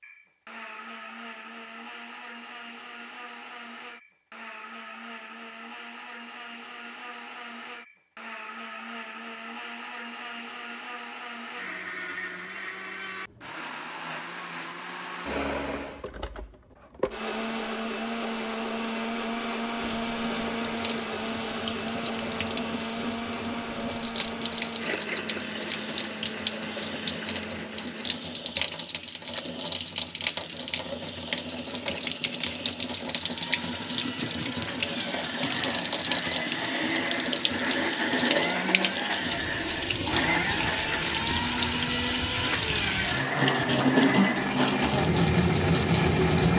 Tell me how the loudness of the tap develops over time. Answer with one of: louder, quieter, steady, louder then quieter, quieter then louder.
louder.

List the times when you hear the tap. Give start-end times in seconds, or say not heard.
19.8-46.5.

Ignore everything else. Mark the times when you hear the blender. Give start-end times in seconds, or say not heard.
0.0-28.4, 33.2-46.5.